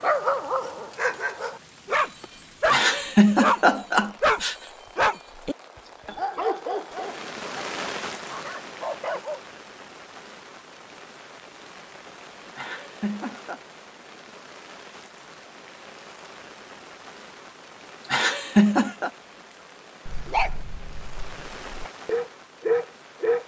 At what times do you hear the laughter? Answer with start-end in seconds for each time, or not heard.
2.7-4.5, 12.6-13.6, 18.1-19.1.